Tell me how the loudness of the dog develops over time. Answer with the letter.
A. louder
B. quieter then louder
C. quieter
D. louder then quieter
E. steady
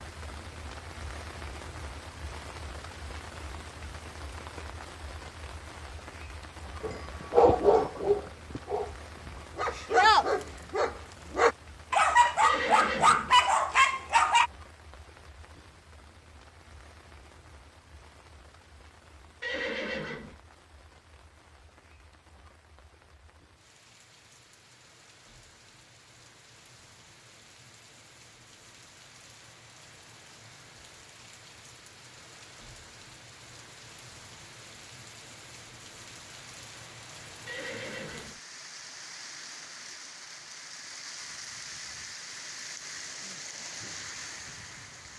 B.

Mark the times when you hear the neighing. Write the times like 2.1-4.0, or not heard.
12.4-13.3, 19.4-20.4, 37.5-38.4.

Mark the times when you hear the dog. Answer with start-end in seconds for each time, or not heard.
6.8-14.5.